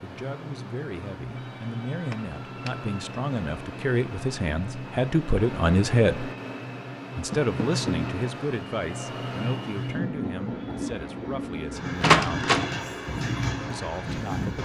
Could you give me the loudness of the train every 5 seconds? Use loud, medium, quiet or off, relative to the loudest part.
medium, loud, loud.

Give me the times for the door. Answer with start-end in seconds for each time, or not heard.
2.1-2.8, 7.3-8.0, 12.0-12.7.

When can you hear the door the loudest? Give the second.
12 s.